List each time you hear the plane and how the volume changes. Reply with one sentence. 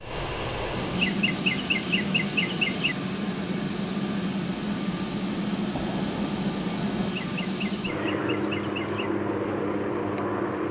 The plane can be heard from 0.0 to 10.6 s, at a steady volume.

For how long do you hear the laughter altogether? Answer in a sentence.
The laughter can be heard for 4 seconds in total.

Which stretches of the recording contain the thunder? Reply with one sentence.
The thunder can be heard from 5.7 to 7.1 s.